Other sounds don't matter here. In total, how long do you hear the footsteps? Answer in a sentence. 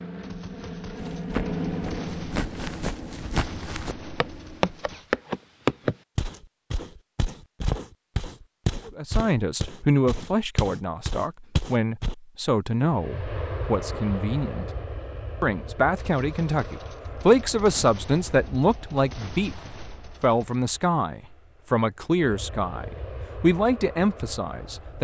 The footsteps can be heard for 11 seconds in total.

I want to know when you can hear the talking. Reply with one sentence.
You can hear the talking from 8.8 to 14.7 s, from 15.4 to 19.6 s and from 20.2 to 24.9 s.